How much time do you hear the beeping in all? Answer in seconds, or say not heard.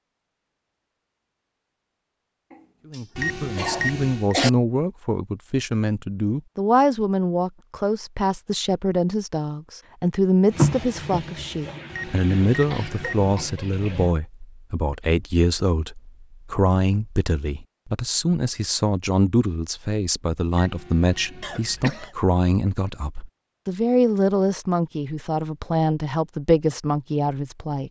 4 s.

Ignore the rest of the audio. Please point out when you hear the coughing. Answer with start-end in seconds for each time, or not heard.
2.5-4.5, 12.6-13.7, 21.4-22.1.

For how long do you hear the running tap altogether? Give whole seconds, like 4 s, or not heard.
4 s.